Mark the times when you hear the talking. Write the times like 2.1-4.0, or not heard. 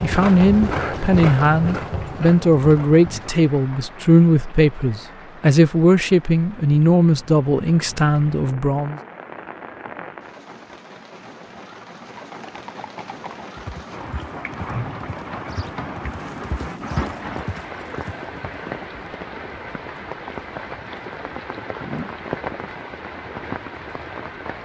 0.0-9.0.